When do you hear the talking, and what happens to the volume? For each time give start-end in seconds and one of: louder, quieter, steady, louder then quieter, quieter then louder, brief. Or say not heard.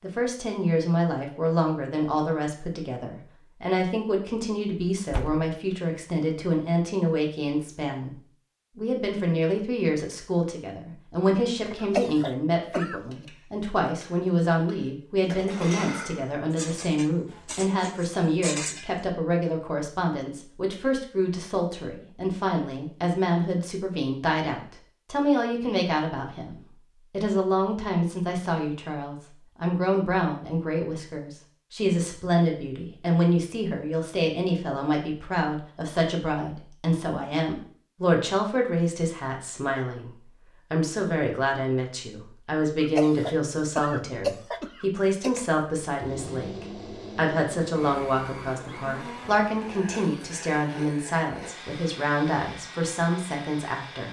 0.0-54.0 steady.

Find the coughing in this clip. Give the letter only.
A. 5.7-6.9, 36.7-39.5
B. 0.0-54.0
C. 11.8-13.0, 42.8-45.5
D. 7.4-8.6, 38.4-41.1
C.